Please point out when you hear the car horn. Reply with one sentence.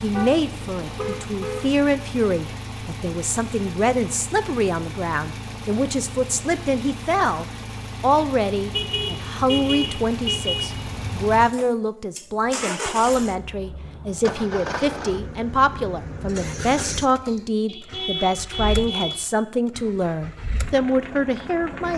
The car horn can be heard from 0.1 to 1.6 s, from 8.7 to 11.4 s and from 17.6 to 19.4 s.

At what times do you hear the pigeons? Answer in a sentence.
You can't hear the pigeons here.